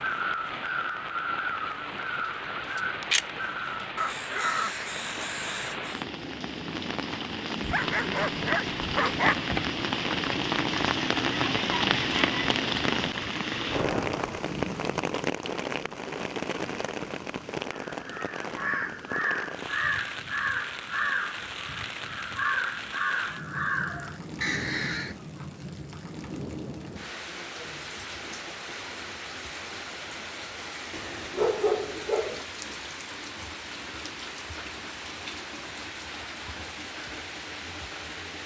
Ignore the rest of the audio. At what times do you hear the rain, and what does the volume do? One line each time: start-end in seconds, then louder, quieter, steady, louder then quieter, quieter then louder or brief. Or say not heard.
0.0-38.4 louder then quieter.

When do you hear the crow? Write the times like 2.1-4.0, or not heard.
0.0-6.0, 17.7-25.1.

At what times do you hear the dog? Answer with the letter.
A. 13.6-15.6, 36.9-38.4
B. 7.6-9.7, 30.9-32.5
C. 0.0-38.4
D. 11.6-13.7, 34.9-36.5
B.